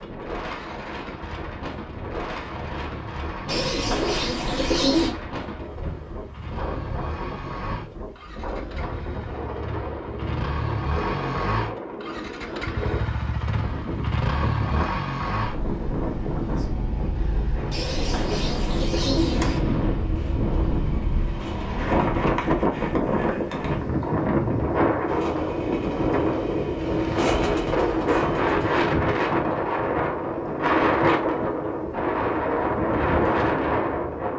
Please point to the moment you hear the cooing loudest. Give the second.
5 s.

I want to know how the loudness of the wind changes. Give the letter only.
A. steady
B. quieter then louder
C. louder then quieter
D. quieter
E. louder
E.